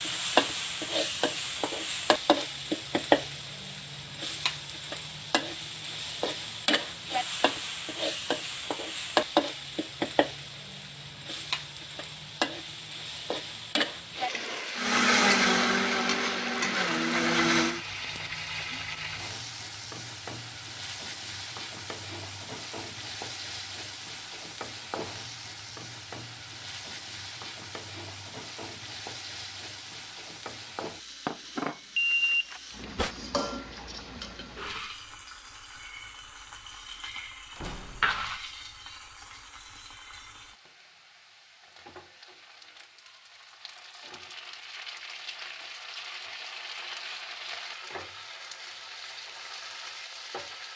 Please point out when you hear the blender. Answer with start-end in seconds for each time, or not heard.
14.8-17.8.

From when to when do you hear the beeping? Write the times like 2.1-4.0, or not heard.
31.9-33.1.